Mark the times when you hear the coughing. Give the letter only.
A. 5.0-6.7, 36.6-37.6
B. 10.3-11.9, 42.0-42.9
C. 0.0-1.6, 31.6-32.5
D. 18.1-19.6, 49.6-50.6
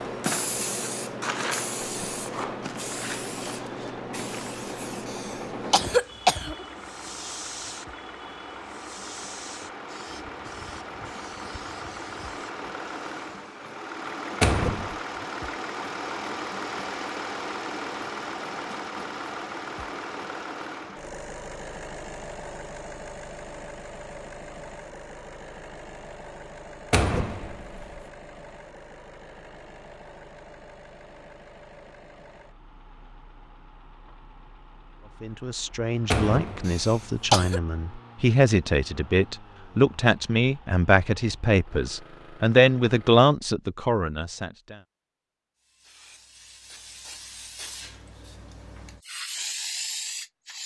A.